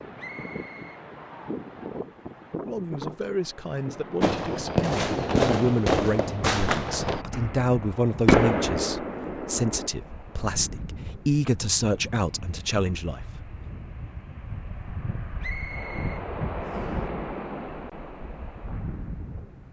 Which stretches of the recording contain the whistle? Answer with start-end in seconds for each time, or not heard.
0.1-1.0, 15.4-17.0.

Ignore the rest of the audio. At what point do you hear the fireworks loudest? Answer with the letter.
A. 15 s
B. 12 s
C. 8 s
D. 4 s
C.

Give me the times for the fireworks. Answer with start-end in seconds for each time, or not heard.
4.2-9.9.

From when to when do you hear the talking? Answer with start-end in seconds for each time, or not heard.
2.6-13.2.